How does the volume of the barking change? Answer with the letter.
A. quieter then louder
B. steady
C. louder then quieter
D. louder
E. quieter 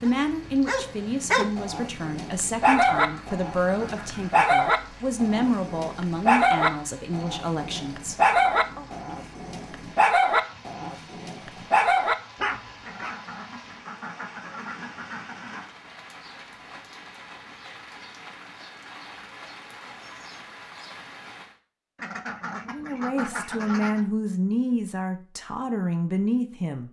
B.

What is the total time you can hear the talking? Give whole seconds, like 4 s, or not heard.
12 s.